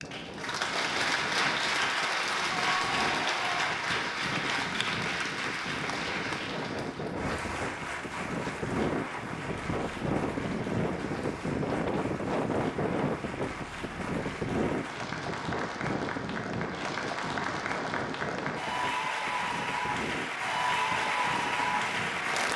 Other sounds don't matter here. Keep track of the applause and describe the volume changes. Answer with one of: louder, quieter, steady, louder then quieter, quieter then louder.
quieter then louder.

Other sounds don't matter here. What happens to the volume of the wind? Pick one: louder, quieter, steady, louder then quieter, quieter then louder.
louder then quieter.